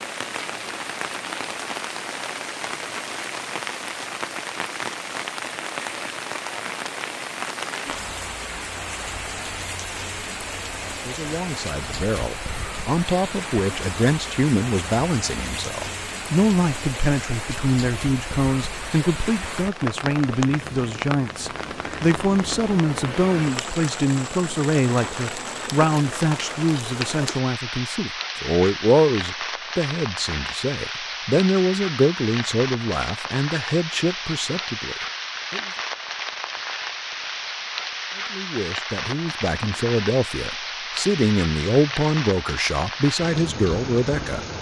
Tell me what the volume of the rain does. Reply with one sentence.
The volume of the rain stays about the same.